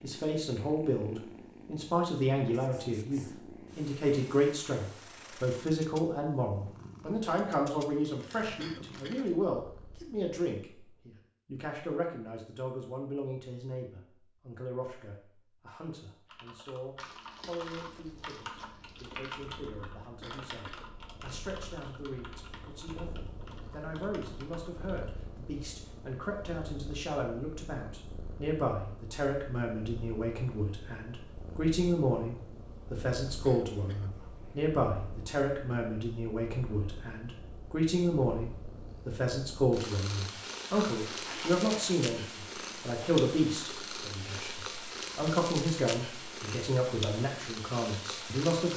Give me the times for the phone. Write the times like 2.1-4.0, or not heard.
not heard.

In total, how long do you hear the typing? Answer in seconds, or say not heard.
9 s.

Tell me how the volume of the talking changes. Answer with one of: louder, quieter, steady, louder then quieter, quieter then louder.
quieter then louder.